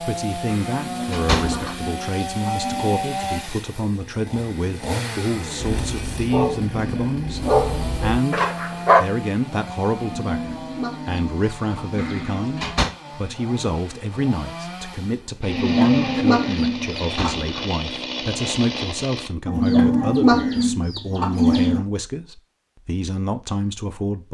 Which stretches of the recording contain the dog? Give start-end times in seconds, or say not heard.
5.6-9.1.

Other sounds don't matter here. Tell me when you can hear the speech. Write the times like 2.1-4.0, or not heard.
0.0-24.3.